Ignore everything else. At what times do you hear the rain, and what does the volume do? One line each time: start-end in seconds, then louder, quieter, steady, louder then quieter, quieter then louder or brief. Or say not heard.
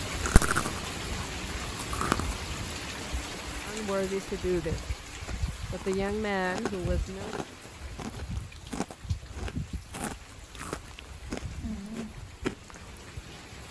0.0-13.6 quieter.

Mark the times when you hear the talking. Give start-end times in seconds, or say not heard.
3.6-7.3.